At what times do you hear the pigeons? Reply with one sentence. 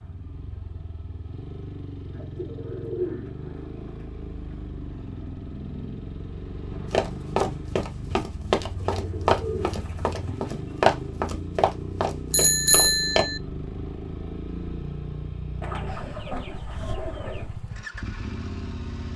You can hear the pigeons from 2.1 to 4.0 s, from 8.8 to 10.9 s and from 15.6 to 17.6 s.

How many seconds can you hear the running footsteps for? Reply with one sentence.
You can hear the running footsteps for 6 seconds altogether.